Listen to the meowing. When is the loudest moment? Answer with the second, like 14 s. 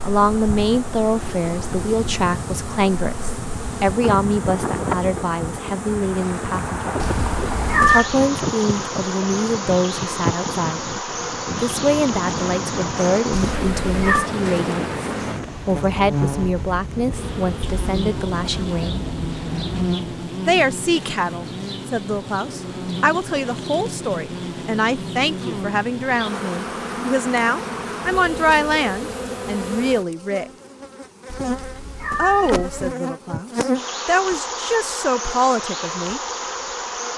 8 s.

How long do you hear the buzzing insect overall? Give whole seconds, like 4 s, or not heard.
37 s.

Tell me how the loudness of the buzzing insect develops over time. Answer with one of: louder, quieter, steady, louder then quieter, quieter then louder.
steady.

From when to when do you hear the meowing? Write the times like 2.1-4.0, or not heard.
7.0-8.1, 13.3-14.3, 31.3-33.0.